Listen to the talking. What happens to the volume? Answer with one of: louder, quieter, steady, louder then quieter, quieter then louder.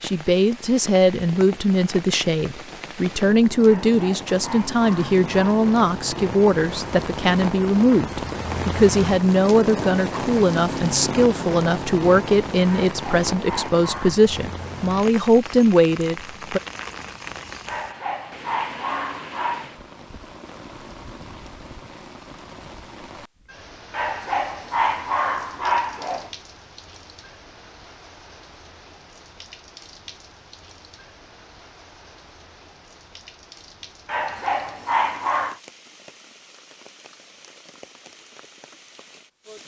steady.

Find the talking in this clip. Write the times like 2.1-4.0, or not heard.
0.0-16.6.